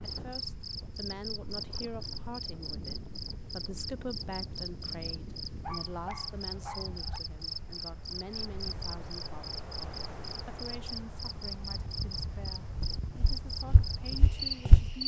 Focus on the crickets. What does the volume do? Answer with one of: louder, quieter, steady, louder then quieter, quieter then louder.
steady.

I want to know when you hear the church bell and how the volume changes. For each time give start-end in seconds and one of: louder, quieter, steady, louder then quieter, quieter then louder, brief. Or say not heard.
not heard.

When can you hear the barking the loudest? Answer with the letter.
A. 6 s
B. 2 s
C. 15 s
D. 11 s
A.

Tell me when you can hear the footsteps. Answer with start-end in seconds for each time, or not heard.
12.8-15.0.